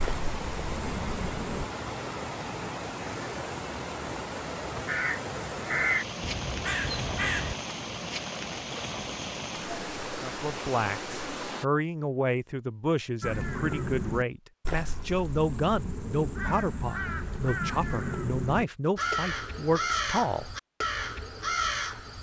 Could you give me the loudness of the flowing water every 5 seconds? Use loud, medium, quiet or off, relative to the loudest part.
loud, loud, loud, off, off.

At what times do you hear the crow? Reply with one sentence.
You can hear the crow from 0.0 to 1.7 s, from 4.8 to 7.5 s and from 13.2 to 22.1 s.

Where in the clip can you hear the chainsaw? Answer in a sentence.
The chainsaw can't be heard in this clip.